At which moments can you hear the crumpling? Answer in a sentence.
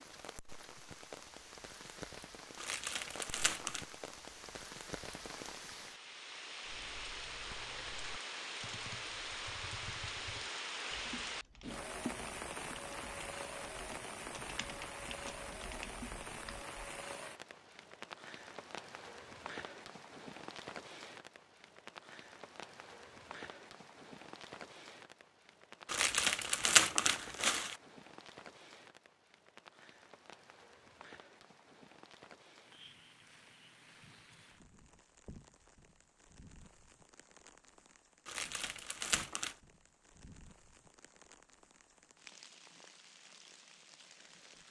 The crumpling can be heard from 2.5 to 3.9 s, from 25.9 to 27.8 s and from 38.2 to 39.5 s.